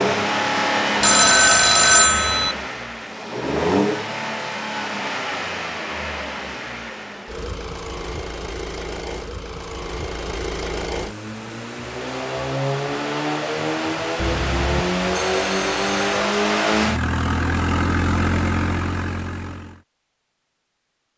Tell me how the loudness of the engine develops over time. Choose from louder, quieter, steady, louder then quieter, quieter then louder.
quieter then louder.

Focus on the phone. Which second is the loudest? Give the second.
2 s.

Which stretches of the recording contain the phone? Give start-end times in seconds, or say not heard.
1.0-2.5, 14.2-16.1.